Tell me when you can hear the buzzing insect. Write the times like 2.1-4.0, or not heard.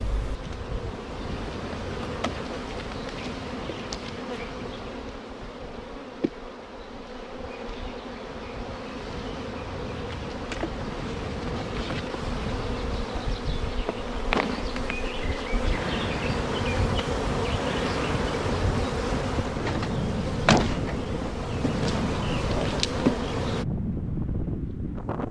0.0-23.6.